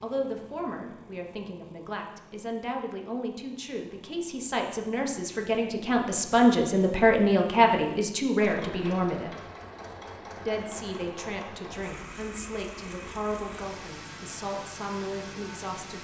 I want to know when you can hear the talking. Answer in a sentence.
You can hear the talking from 0.0 to 9.3 s and from 10.4 to 15.9 s.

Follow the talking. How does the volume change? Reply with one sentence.
The loudness of the talking goes up, then down.